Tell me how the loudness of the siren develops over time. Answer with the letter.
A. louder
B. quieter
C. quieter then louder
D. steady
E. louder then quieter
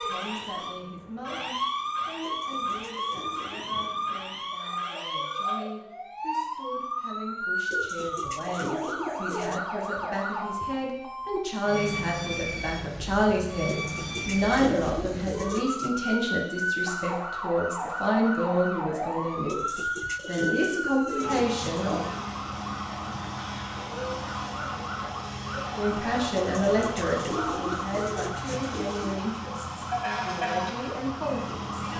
D.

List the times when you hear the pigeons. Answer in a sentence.
The pigeons can be heard from 2.2 to 3.8 s, from 7.7 to 9.6 s, from 13.7 to 15.9 s, from 19.4 to 22.2 s and from 26.4 to 29.2 s.